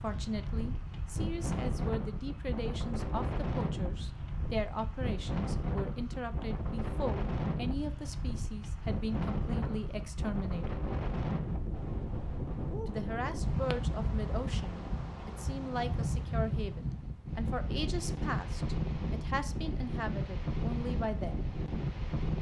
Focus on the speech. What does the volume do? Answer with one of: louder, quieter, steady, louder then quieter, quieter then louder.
steady.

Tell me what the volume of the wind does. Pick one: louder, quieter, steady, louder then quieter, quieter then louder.
steady.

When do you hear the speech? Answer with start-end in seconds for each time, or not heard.
0.0-10.8, 12.8-21.4.